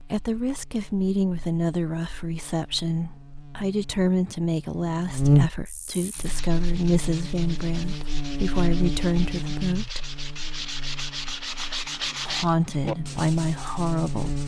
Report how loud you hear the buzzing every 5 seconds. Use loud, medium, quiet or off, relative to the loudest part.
quiet, loud, medium.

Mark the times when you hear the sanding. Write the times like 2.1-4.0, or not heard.
6.0-14.4.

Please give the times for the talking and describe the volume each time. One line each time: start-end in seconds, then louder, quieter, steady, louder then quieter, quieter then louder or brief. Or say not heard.
0.0-10.0 steady
12.2-14.3 brief.